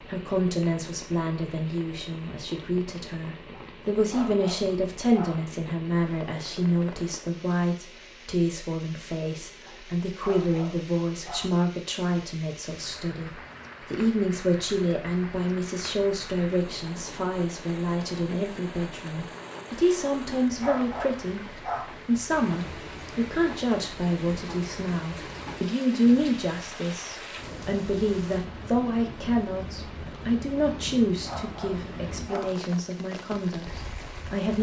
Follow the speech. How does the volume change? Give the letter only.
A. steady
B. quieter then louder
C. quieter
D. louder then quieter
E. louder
A.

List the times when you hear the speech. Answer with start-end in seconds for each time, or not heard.
0.0-21.4, 22.1-34.5.